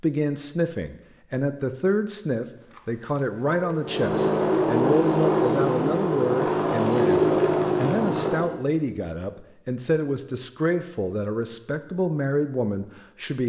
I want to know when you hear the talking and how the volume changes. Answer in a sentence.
The talking can be heard from 0.0 to 13.4 s, at a steady volume.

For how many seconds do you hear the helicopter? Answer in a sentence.
The helicopter can be heard for 5 seconds in total.